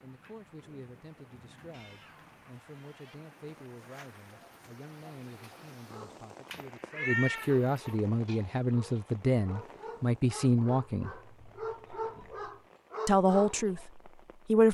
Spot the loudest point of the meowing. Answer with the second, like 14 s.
7 s.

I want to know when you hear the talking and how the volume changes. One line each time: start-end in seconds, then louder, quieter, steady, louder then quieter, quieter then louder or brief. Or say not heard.
0.0-11.1 louder
13.1-14.7 brief.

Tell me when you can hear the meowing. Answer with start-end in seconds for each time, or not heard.
1.7-3.1, 6.5-7.9, 11.1-12.7.